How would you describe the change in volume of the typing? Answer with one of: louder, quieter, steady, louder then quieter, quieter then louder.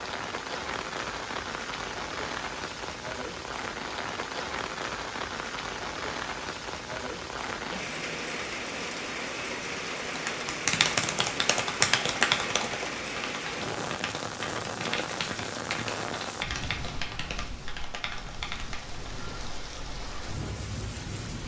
quieter.